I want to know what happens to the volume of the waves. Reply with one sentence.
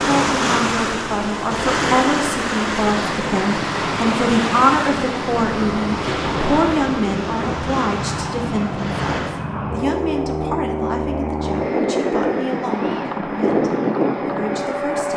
The loudness of the waves goes down.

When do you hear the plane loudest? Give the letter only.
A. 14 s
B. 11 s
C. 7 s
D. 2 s
A.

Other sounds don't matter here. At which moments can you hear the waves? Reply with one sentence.
The waves can be heard from 0.0 to 9.4 s.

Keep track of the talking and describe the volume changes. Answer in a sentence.
The volume of the talking goes down.